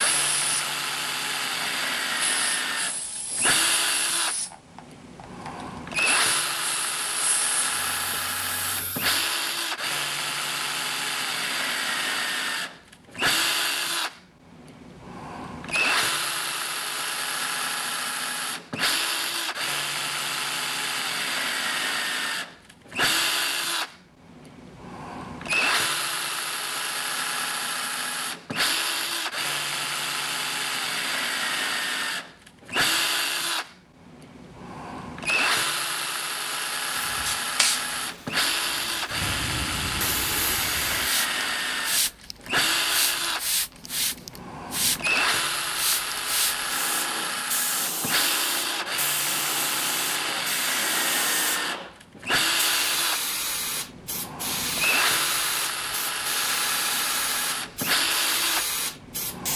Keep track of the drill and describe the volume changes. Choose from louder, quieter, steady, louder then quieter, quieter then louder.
steady.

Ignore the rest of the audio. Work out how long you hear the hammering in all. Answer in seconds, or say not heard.
not heard.